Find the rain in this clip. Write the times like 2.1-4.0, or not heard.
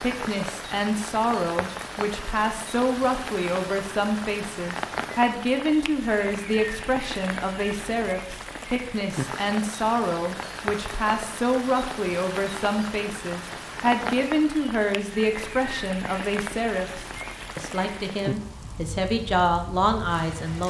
0.0-20.6.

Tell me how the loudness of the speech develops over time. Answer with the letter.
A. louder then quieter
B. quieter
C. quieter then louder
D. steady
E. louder
D.